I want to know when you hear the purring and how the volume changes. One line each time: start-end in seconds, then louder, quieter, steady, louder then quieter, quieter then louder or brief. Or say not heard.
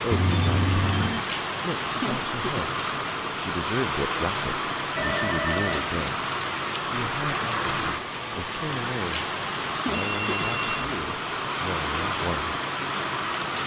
not heard.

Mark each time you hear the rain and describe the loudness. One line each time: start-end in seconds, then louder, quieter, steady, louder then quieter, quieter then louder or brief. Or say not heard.
0.0-13.6 steady.